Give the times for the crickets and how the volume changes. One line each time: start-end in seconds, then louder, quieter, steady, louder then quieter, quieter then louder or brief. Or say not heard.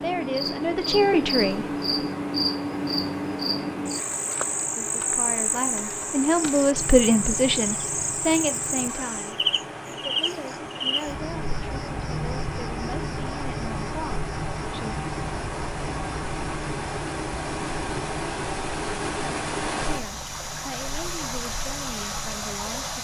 0.0-22.9 quieter.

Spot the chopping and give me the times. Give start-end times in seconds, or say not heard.
not heard.